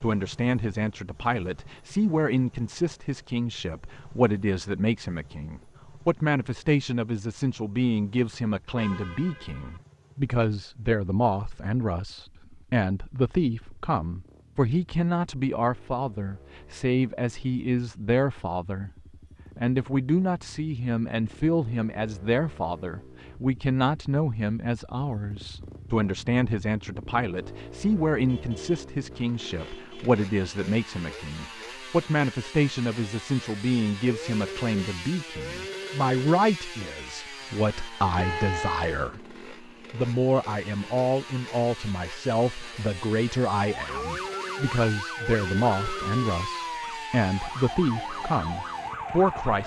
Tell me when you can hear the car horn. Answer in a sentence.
You can hear the car horn from 8.8 to 9.8 s, from 28.2 to 30.1 s and from 38.1 to 39.0 s.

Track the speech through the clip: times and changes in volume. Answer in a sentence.
You can hear the speech from 0.0 to 18.9 s, at a steady volume; and from 19.6 to 49.6 s, at a steady volume.